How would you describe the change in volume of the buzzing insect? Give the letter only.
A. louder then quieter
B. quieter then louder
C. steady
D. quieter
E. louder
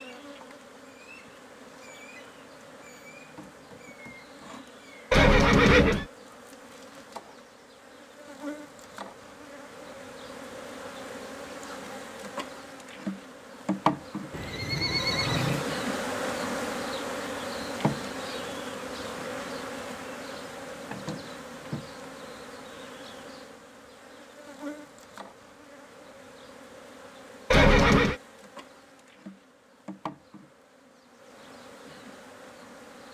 A.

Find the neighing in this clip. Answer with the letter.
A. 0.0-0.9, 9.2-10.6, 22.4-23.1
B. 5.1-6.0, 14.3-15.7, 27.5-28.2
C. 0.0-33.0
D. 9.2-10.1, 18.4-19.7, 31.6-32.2
B.